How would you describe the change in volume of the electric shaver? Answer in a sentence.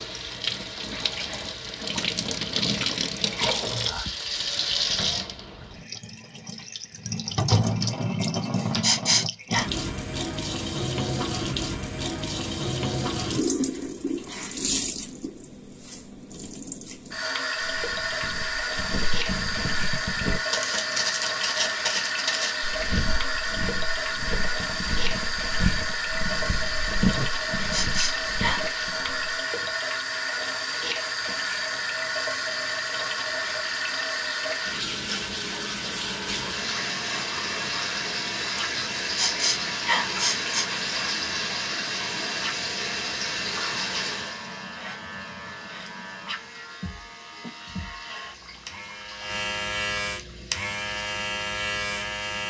The volume of the electric shaver goes up.